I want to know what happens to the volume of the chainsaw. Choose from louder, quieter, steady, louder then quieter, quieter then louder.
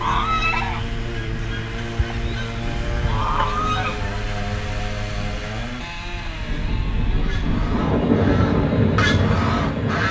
quieter.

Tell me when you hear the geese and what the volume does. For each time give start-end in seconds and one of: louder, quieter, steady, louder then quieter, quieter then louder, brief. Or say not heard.
0.0-4.2 quieter then louder
7.2-10.0 brief.